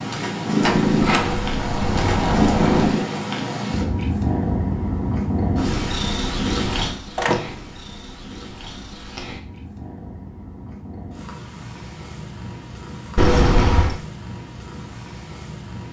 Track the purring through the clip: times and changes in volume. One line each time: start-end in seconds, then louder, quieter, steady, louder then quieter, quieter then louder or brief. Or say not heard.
0.0-15.8 quieter.